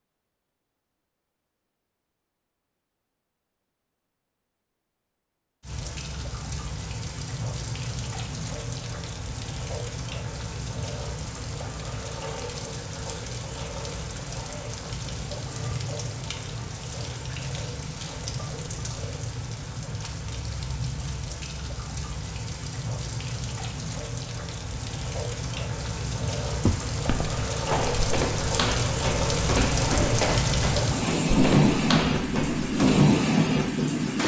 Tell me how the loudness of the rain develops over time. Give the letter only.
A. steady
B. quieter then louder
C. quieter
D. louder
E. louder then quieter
D.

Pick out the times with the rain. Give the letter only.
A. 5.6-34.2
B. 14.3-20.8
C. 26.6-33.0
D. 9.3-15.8
A.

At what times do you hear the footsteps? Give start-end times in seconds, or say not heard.
26.6-33.0.